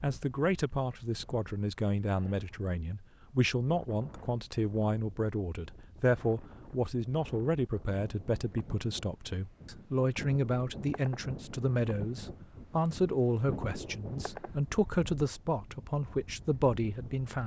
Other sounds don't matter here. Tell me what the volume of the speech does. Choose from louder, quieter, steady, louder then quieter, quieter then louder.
steady.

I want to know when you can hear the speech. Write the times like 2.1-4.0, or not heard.
0.0-17.4.